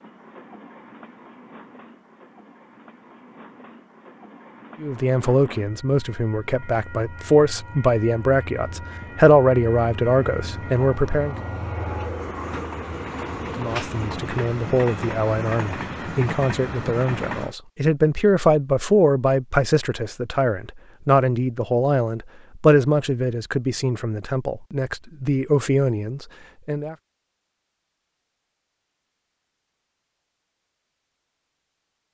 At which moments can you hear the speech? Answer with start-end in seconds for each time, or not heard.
4.8-11.3, 13.6-26.9.